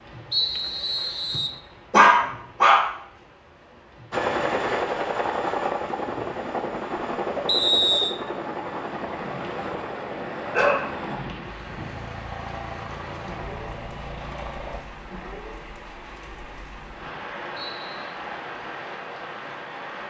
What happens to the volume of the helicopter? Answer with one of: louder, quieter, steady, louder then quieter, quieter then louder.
quieter.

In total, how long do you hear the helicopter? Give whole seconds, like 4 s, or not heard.
11 s.